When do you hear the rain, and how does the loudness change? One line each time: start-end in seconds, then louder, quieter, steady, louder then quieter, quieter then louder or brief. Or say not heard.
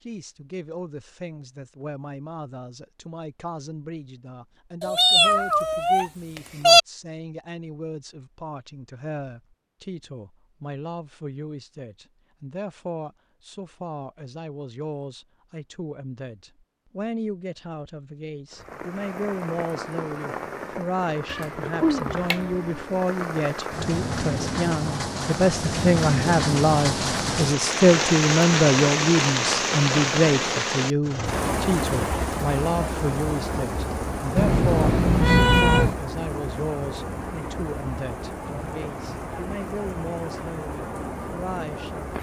18.5-42.1 louder then quieter.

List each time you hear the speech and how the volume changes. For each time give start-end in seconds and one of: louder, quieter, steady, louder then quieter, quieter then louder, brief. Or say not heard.
0.0-42.1 louder then quieter.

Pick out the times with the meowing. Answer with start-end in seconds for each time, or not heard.
4.8-6.8, 21.3-22.9, 34.4-36.0.